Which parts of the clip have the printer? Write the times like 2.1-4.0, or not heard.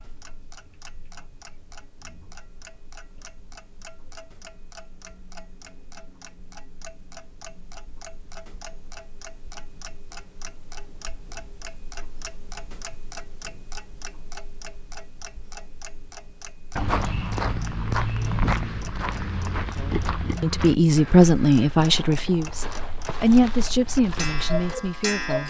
not heard.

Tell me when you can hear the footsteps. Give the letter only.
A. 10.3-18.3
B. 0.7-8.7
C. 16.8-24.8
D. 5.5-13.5
C.